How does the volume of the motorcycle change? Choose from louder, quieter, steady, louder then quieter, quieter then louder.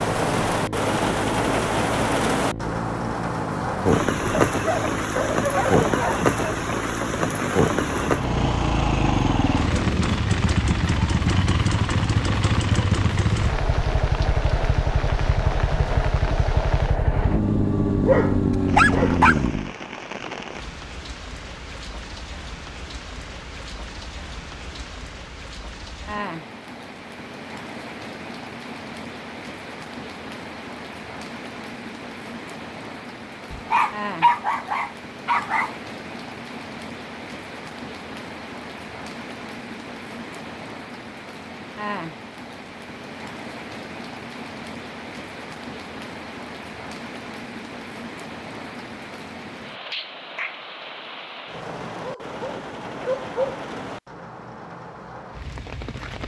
louder.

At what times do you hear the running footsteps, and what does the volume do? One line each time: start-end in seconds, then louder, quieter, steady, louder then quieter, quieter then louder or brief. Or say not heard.
not heard.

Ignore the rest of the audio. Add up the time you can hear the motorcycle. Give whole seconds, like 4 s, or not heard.
20 s.